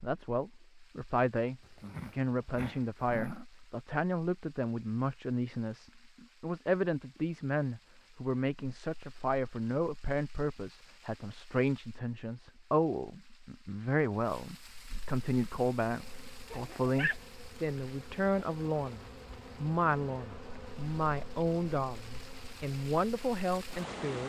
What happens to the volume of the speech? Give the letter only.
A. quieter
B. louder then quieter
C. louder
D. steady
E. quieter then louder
D.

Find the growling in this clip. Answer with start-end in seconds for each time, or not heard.
1.6-3.5, 16.5-17.1.